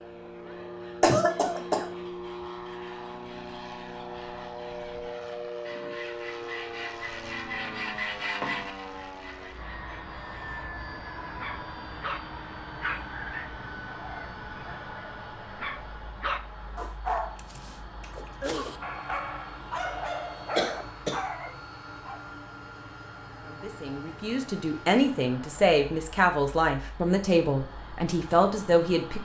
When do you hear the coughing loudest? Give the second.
1 s.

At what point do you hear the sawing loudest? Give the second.
8 s.